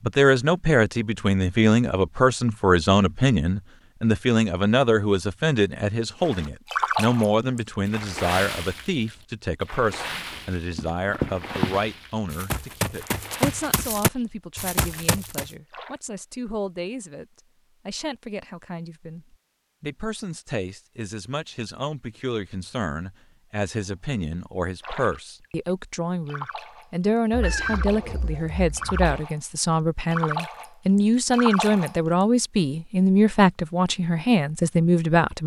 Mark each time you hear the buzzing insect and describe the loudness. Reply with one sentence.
The buzzing insect can't be heard in this clip.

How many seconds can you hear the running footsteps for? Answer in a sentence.
You can hear the running footsteps for 5 seconds altogether.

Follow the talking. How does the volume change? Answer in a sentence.
The loudness of the talking goes down, then up.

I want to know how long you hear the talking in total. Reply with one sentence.
You can hear the talking for 35 seconds altogether.